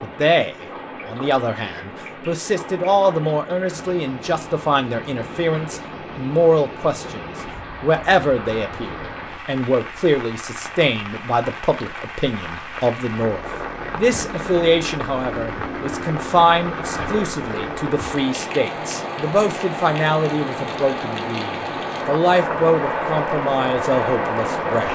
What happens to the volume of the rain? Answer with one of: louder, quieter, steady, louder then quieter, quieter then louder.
louder.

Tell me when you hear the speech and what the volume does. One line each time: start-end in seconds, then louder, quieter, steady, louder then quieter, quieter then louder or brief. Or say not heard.
0.0-24.9 steady.